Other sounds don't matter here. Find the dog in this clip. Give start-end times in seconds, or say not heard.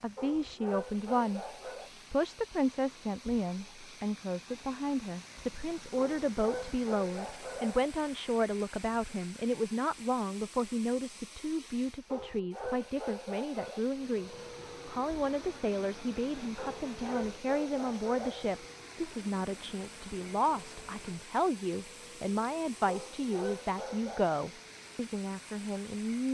0.1-1.9, 6.0-7.9, 12.1-13.8, 16.6-18.5, 22.9-24.3.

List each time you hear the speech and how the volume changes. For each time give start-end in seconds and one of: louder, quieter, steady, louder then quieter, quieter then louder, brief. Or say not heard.
0.0-1.4 brief
2.1-26.2 steady.